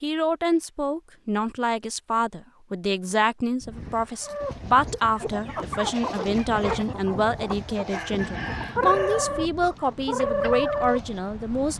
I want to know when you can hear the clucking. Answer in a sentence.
You can hear the clucking from 4.2 to 11.2 s.